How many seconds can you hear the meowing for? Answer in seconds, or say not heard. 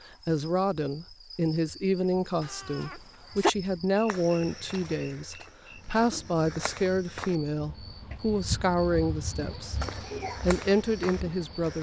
3 s.